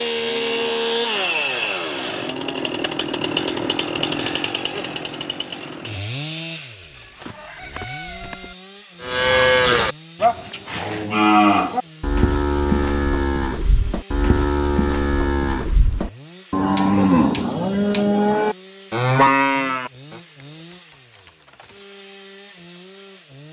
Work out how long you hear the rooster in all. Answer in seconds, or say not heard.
2 s.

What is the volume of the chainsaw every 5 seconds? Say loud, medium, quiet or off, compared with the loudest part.
loud, medium, quiet, quiet, quiet.